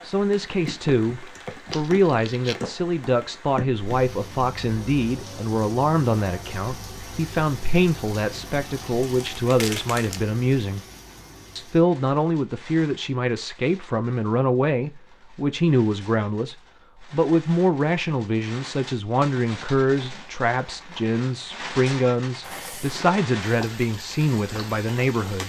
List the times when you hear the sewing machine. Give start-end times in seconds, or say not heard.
not heard.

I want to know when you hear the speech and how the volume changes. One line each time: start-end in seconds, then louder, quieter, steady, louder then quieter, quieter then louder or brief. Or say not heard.
0.0-10.8 steady
11.6-25.4 steady.